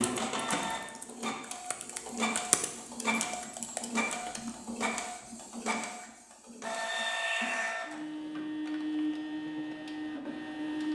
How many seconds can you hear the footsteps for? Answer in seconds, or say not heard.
not heard.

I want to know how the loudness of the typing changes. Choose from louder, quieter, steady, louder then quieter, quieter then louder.
louder then quieter.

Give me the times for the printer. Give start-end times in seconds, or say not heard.
0.0-10.9.